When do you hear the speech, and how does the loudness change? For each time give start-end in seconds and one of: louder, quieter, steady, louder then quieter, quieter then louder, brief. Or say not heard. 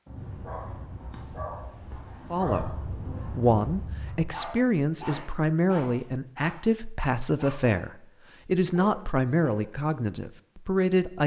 2.3-11.2 steady.